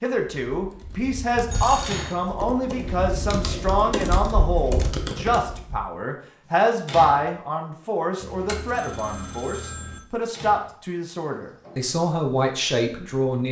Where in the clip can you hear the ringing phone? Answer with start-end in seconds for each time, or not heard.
1.5-2.1, 8.2-10.0.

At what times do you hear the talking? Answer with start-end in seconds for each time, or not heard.
0.0-13.4.